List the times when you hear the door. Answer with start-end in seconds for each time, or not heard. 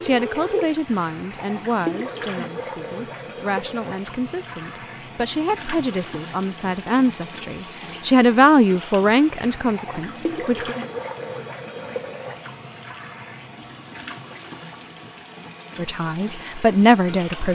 not heard.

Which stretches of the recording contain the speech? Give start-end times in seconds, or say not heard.
0.0-10.8, 15.8-17.4.